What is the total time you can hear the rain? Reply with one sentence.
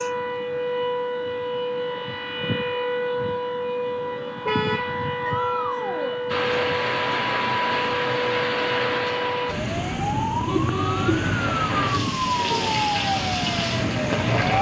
The rain can be heard for 8 seconds in total.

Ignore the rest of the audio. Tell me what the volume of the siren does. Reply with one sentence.
The loudness of the siren stays about the same.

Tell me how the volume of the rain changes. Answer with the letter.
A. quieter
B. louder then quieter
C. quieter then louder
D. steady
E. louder
C.